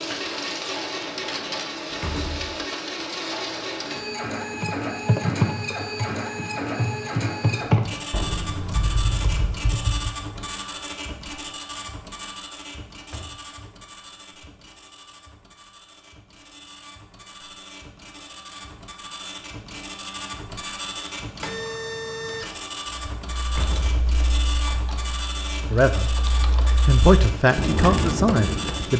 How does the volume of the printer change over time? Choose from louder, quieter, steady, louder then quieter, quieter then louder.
quieter then louder.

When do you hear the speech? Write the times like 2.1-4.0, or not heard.
25.7-26.1, 26.9-28.9.